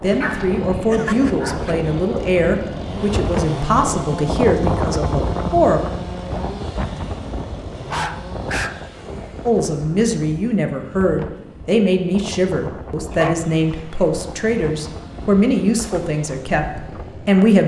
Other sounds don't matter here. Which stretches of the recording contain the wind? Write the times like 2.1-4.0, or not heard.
0.0-17.4.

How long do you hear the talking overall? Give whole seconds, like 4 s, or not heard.
14 s.